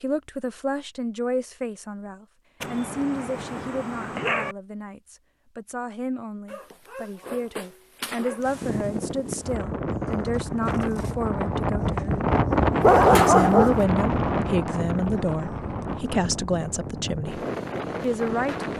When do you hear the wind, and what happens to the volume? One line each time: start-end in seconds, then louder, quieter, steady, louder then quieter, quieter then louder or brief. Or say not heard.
8.4-18.7 louder then quieter.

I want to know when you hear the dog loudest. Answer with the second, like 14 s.
13 s.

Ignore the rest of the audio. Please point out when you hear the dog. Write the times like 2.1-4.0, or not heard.
2.6-4.5, 6.5-8.4, 12.8-13.8.